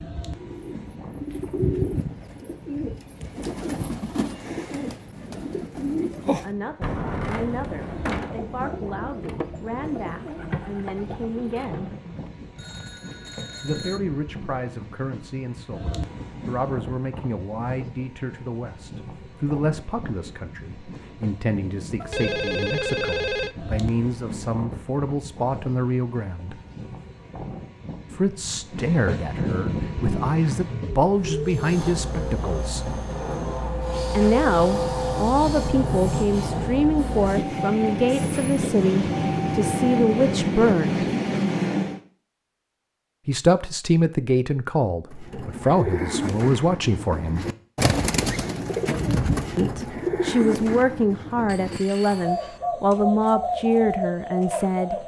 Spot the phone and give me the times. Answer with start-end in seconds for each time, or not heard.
12.1-14.0, 22.0-23.6, 51.5-52.6.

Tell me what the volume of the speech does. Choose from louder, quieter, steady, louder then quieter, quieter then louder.
louder.